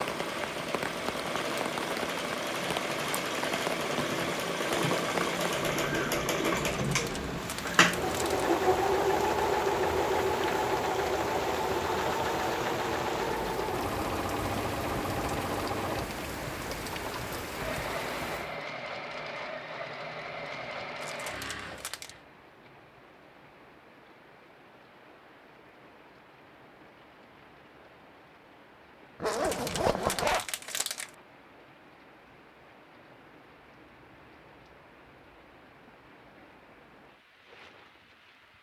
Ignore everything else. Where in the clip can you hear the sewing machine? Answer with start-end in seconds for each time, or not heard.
0.0-22.2.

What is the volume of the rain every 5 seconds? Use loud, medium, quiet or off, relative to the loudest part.
loud, loud, loud, loud, quiet, quiet, quiet, quiet.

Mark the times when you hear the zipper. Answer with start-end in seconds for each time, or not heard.
29.2-30.4.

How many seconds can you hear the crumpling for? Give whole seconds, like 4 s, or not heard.
5 s.